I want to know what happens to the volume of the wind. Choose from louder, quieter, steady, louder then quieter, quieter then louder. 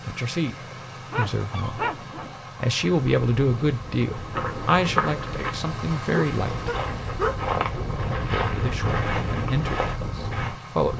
louder.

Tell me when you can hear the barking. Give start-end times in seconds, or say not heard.
1.1-2.4, 6.1-7.8.